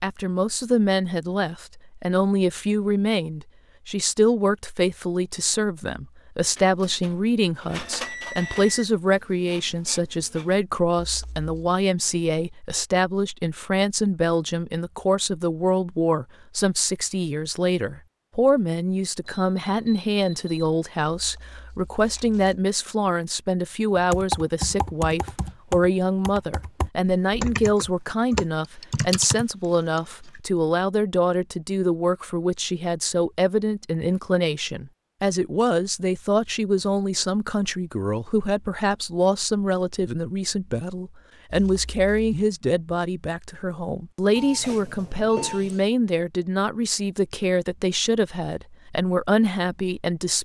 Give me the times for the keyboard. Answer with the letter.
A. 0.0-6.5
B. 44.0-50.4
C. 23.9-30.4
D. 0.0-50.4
C.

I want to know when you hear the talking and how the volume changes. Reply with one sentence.
You can hear the talking from 0.0 to 50.4 s, at a steady volume.